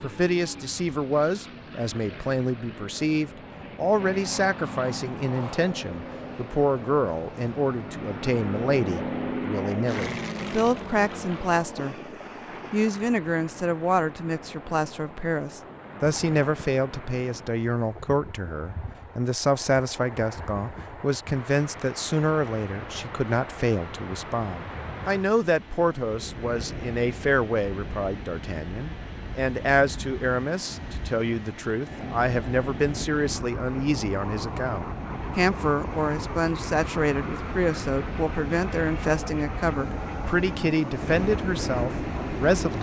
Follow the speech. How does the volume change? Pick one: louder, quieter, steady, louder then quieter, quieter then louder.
steady.